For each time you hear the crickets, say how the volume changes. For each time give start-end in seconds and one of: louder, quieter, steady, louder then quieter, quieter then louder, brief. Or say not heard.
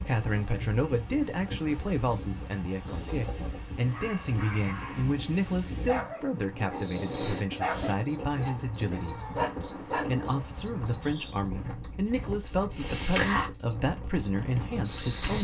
6.7-15.3 steady.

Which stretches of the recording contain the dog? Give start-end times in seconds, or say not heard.
3.9-5.2, 5.8-6.8, 7.5-10.2.